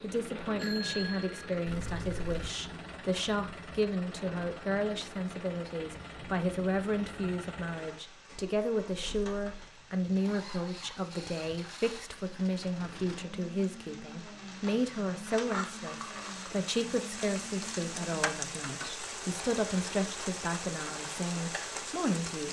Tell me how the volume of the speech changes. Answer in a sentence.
The volume of the speech stays about the same.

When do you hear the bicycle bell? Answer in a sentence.
You can hear the bicycle bell from 0.6 to 2.5 s.